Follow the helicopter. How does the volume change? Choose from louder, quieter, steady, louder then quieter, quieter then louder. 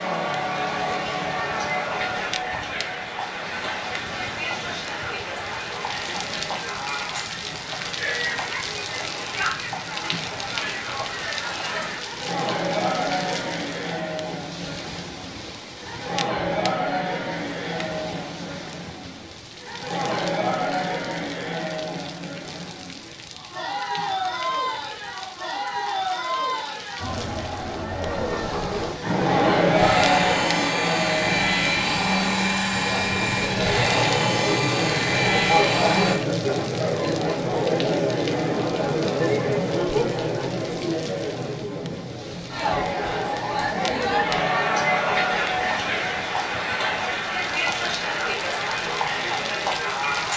steady.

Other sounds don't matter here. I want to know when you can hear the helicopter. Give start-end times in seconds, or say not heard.
29.0-36.2.